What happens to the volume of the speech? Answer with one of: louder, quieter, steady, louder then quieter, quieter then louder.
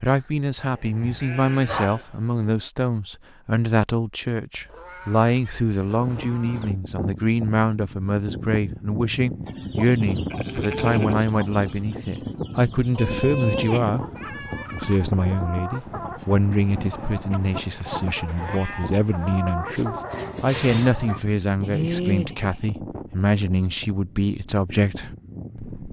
steady.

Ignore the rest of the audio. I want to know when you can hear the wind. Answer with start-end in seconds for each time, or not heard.
6.0-25.8.